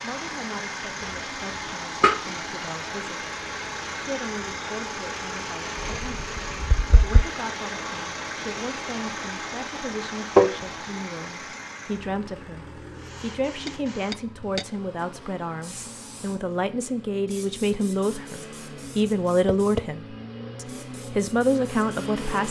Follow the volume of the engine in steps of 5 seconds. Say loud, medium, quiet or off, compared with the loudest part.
loud, loud, medium, medium, loud.